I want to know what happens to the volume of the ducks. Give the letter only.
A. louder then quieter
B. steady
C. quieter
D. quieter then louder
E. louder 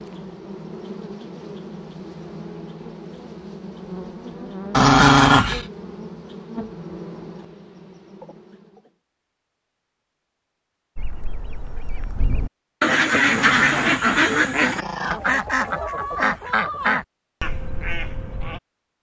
A.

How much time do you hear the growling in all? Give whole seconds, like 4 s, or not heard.
3 s.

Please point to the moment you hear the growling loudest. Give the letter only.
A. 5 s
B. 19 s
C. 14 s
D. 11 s
A.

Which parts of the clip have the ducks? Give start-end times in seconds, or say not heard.
10.9-18.6.